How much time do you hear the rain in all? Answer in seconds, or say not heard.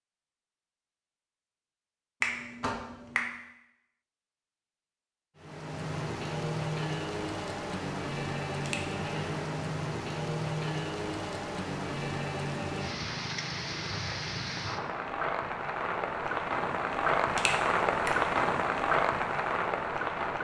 15 s.